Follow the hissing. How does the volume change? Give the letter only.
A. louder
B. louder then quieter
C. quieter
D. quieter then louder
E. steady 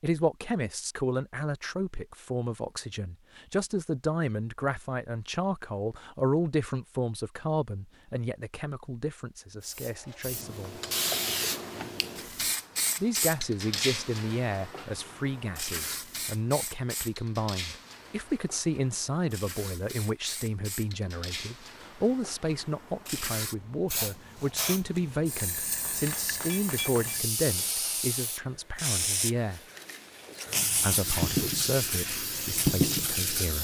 D.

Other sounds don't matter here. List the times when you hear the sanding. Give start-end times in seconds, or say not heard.
30.4-33.5.